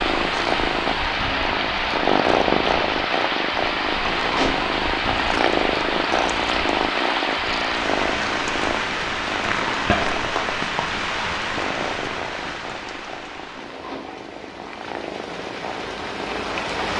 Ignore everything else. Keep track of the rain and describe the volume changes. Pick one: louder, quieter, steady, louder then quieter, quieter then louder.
quieter.